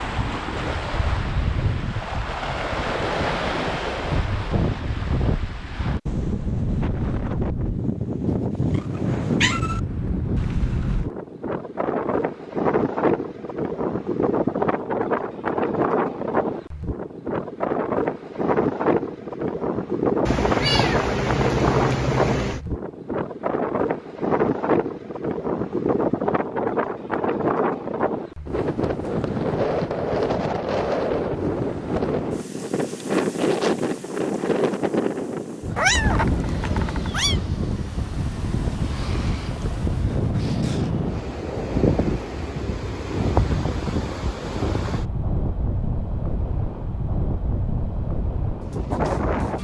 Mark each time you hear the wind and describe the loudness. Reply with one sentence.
The wind can be heard from 0.0 to 49.5 s, at a steady volume.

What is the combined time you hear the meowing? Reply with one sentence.
The meowing can be heard for 5 seconds in total.